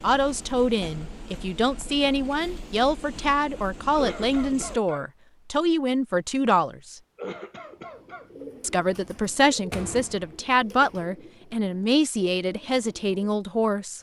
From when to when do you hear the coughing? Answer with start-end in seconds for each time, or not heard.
4.0-5.0, 7.2-8.2.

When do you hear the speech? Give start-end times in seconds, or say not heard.
0.0-7.0, 8.6-13.9.